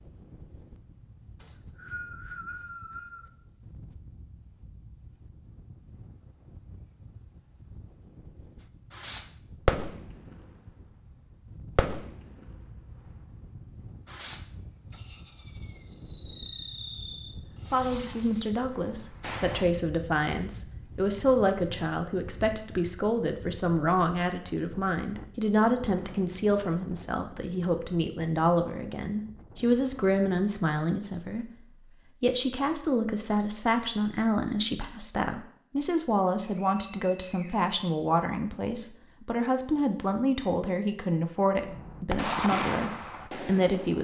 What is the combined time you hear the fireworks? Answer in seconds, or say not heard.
12 s.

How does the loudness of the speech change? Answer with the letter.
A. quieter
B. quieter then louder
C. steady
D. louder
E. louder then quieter
C.